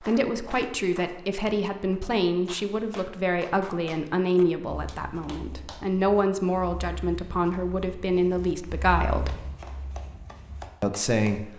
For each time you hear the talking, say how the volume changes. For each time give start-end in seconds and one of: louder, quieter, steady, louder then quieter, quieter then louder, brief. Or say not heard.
0.0-9.3 steady
10.8-11.5 brief.